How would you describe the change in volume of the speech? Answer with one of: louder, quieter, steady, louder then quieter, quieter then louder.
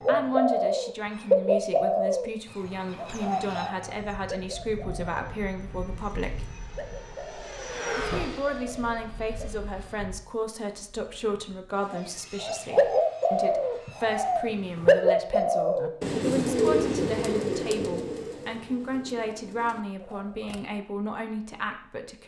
steady.